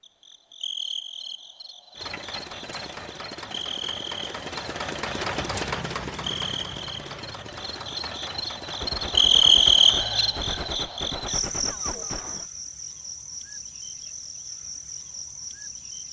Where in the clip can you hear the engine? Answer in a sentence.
The engine can be heard from 1.9 to 10.8 s.